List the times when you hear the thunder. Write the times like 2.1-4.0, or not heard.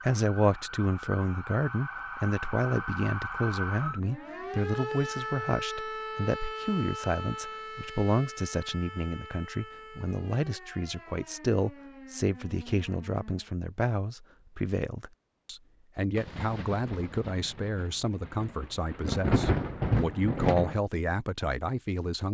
16.1-20.8.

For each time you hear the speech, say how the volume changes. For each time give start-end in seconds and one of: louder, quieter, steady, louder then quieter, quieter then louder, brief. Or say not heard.
0.0-22.3 steady.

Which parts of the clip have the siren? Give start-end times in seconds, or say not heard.
0.0-13.5.